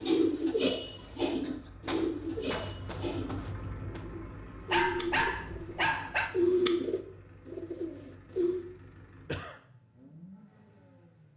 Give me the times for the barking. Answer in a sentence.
You can hear the barking from 4.7 to 6.3 s.